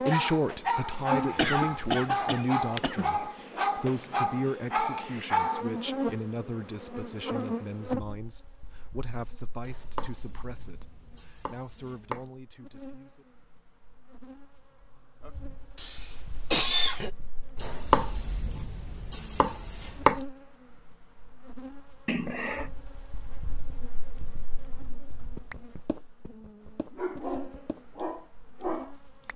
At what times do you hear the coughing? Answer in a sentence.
You can hear the coughing from 1.4 to 3.2 s, from 15.8 to 17.1 s and from 22.1 to 22.6 s.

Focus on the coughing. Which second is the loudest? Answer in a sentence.
The loudest moment of the coughing is at 17 seconds.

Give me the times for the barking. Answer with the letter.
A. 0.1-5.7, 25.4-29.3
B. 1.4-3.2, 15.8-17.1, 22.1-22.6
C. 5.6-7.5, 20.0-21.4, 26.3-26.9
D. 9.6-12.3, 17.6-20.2
A.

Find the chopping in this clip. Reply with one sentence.
You can hear the chopping from 9.6 to 12.3 s and from 17.6 to 20.2 s.